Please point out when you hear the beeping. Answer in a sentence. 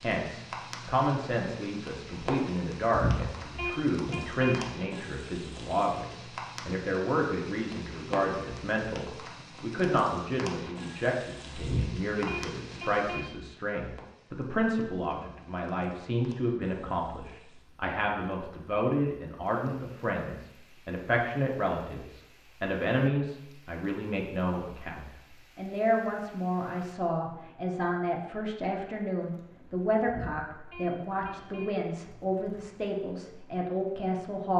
You can hear the beeping from 2.9 to 4.6 s, from 11.6 to 13.2 s and from 30.1 to 31.7 s.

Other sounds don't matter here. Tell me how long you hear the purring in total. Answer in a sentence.
The purring can't be heard in this clip.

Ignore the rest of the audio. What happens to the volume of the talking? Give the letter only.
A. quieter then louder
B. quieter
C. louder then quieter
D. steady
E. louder
D.